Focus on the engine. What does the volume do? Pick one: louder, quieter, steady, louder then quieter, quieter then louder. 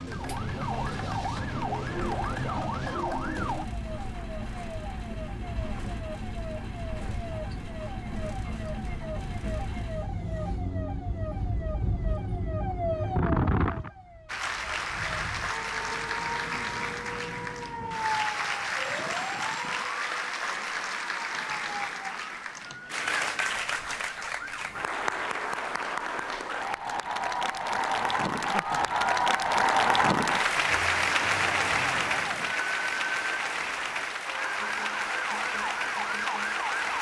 steady.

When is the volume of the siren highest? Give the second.
13 s.